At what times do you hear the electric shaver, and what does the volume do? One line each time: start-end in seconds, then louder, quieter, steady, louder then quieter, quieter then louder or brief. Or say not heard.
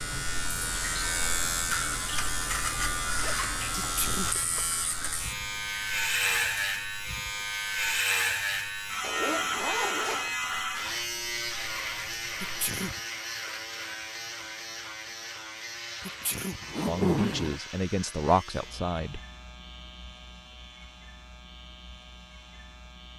0.0-23.1 quieter.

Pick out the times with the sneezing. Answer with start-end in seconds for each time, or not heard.
3.8-4.4, 12.4-13.0, 16.1-16.6.